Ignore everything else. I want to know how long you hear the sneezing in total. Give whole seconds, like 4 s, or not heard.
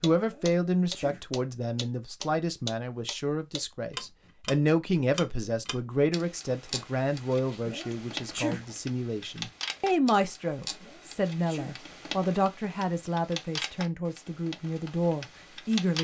3 s.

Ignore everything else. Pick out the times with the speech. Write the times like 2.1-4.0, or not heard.
0.0-15.9.